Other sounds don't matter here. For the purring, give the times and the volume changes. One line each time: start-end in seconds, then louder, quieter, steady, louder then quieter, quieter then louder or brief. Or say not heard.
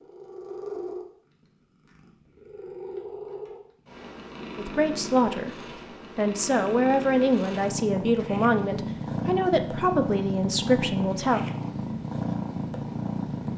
0.0-13.5 louder.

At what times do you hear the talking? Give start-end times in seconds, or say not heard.
4.5-5.5, 6.2-11.4.